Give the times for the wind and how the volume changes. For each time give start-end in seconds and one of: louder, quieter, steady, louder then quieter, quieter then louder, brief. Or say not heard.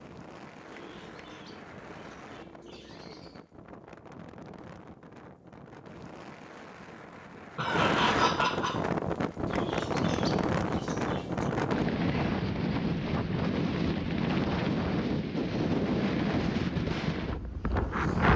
0.0-18.3 louder.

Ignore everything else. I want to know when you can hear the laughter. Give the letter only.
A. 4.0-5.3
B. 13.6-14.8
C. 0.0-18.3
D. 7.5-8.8
D.